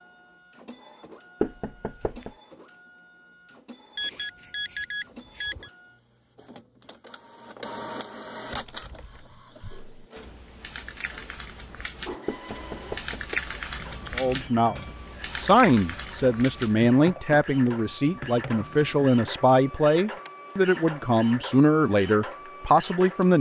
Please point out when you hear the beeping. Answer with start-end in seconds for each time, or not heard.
4.0-5.7, 13.8-14.9.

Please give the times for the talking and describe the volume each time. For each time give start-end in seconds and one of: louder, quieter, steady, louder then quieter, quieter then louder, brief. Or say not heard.
14.2-23.3 steady.